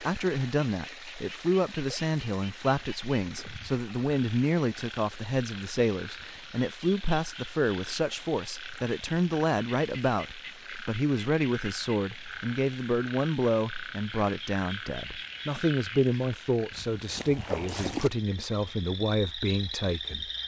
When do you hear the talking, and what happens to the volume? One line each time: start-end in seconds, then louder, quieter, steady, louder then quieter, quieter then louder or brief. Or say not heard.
0.0-20.3 steady.